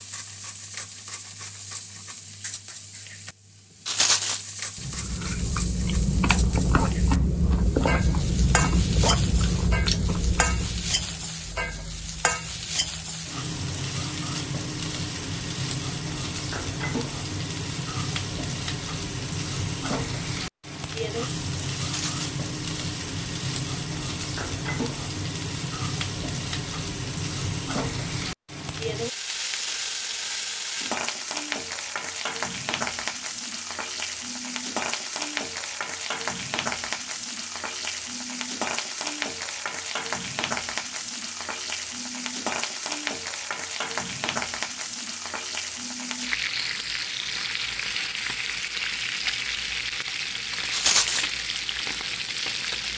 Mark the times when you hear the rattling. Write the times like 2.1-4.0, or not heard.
3.9-4.4, 21.8-22.3, 50.7-51.3.